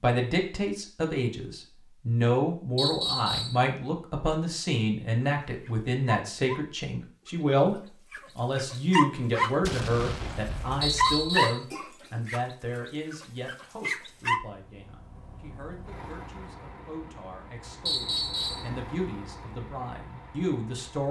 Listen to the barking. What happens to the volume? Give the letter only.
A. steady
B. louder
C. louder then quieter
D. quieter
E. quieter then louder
B.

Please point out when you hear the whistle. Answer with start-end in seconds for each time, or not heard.
2.8-3.6, 10.8-11.7, 17.9-18.7.